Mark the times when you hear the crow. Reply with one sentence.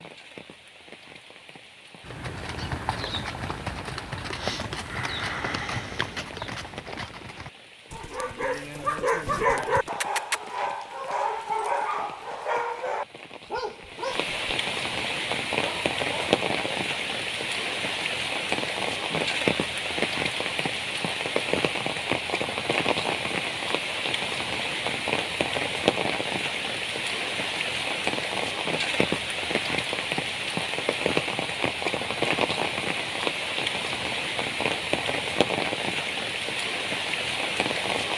The crow can't be heard in this clip.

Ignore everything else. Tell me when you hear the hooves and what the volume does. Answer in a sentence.
The hooves can be heard from 2.0 to 9.9 s, getting quieter.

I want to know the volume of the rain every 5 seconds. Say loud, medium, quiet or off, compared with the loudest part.
quiet, quiet, medium, loud, loud, loud, loud, loud.